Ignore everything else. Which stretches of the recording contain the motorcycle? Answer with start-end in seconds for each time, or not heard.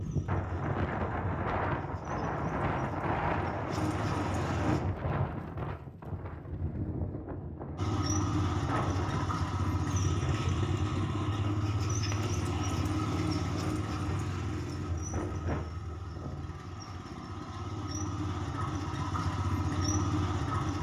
0.0-4.8, 7.8-20.7.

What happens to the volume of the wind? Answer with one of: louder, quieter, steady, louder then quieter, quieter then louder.
quieter.